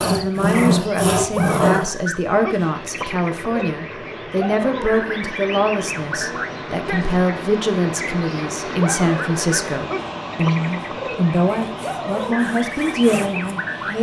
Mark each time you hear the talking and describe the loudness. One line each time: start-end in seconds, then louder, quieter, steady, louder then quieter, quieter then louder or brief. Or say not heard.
0.0-13.9 steady.